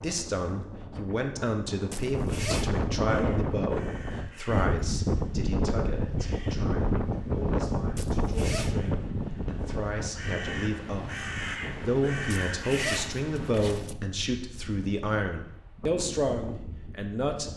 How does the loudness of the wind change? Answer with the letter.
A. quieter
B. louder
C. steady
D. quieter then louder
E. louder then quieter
A.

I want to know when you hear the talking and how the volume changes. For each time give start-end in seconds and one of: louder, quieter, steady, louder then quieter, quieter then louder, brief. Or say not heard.
0.0-17.5 quieter then louder.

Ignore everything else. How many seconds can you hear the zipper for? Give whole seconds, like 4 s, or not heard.
3 s.